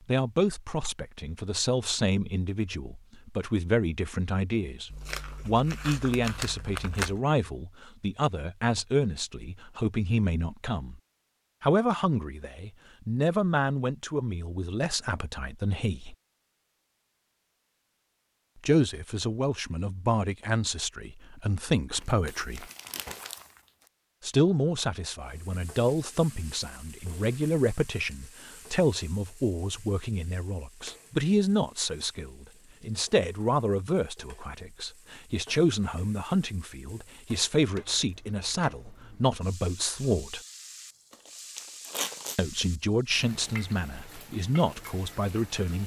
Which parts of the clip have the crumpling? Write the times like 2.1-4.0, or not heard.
4.9-7.2, 21.9-23.6, 41.1-42.4.